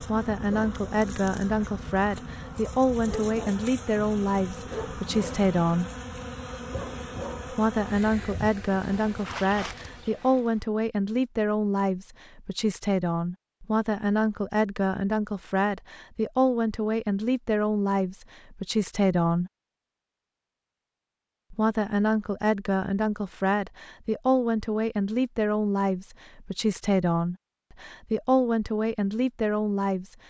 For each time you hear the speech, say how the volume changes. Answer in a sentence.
The speech can be heard from 0.0 to 5.9 s, at a steady volume; from 7.5 to 19.5 s, at a steady volume; and from 21.5 to 30.1 s, at a steady volume.